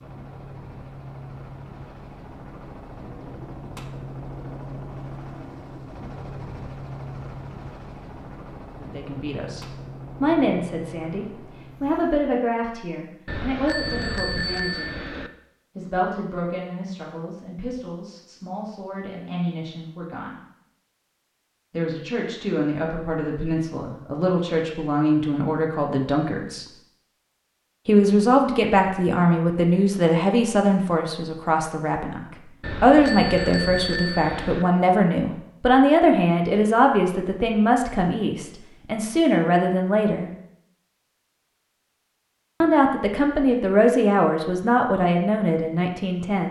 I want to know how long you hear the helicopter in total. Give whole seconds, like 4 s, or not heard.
12 s.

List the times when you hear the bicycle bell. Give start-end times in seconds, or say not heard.
13.2-15.3, 32.6-34.6.